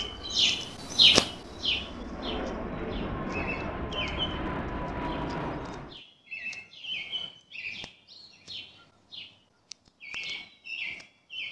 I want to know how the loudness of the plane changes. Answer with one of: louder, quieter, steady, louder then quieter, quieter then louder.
louder.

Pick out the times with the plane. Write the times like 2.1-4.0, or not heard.
0.0-6.0.